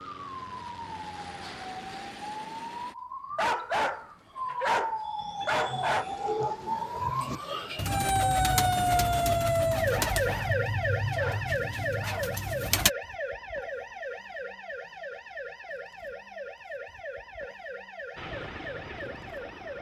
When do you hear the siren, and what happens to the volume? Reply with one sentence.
You can hear the siren from 0.0 to 19.7 s, getting louder then quieter.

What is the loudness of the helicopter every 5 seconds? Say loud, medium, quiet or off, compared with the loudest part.
loud, off, off, loud.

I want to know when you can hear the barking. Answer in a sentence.
You can hear the barking from 3.4 to 6.0 s and from 10.1 to 12.4 s.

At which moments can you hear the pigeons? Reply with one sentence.
The pigeons can be heard from 5.5 to 12.9 s.